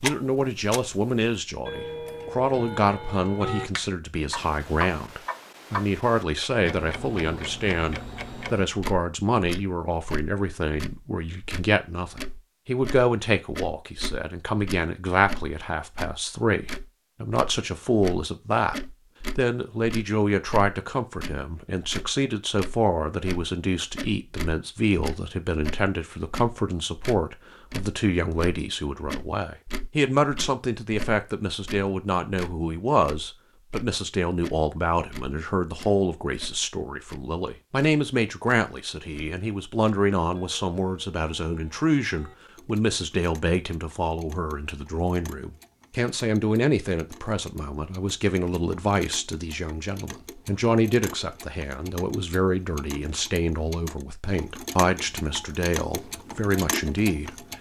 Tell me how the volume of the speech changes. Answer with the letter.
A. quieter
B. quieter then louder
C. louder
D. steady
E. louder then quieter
D.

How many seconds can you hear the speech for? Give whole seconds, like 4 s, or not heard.
57 s.